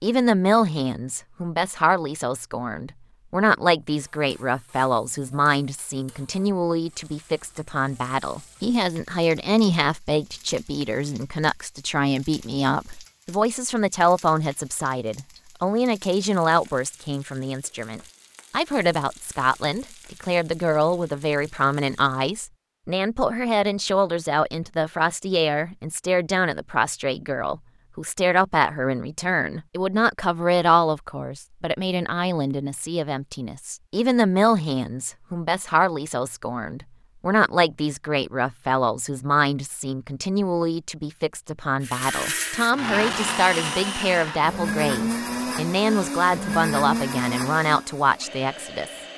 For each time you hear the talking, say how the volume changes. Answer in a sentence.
You can hear the talking from 0.0 to 48.9 s, at a steady volume.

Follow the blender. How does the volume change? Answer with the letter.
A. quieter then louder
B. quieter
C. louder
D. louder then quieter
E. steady
B.